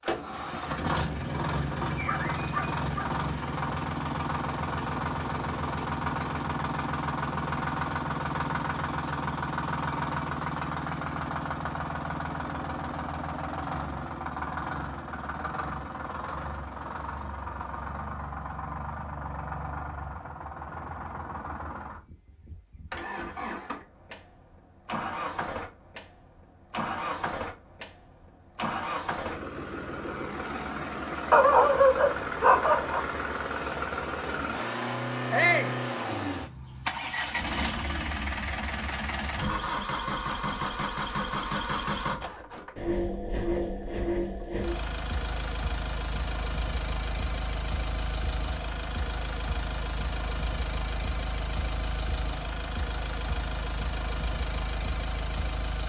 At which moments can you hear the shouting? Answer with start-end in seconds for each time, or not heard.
35.3-35.8.